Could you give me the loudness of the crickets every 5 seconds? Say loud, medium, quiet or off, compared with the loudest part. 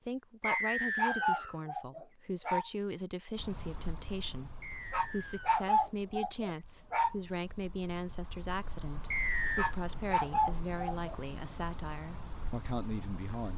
loud, medium, loud.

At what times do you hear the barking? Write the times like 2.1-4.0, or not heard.
0.5-2.7, 4.9-7.2, 9.6-11.2.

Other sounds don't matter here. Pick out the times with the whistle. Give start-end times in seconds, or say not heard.
0.4-1.6, 4.6-5.6, 9.1-9.8.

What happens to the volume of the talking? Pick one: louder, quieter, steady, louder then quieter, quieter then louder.
steady.